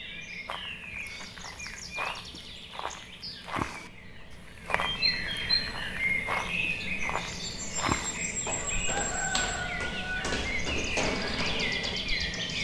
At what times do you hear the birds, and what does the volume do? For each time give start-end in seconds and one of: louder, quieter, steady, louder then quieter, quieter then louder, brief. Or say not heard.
0.0-12.5 louder.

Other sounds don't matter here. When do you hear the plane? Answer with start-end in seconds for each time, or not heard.
10.9-12.5.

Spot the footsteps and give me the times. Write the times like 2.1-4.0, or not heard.
0.5-12.2.